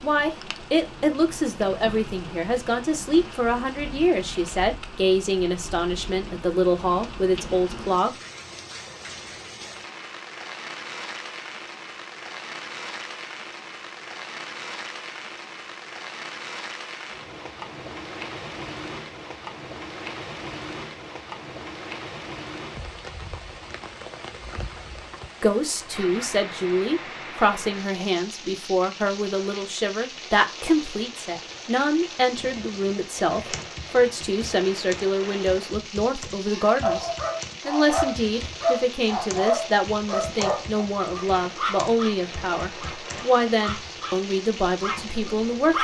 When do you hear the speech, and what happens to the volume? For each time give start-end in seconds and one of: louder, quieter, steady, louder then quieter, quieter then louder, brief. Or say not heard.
0.0-8.1 steady
25.4-45.7 steady.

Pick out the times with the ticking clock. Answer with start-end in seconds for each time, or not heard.
not heard.